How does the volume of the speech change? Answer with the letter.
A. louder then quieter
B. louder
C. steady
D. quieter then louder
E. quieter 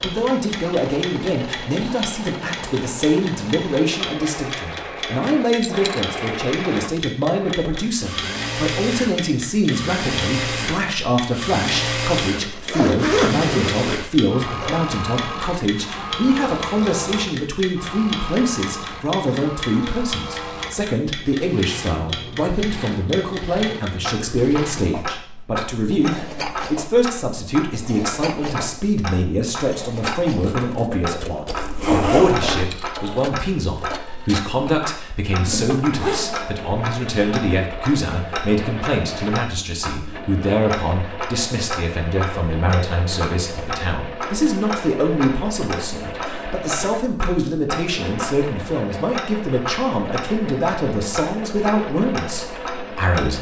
C.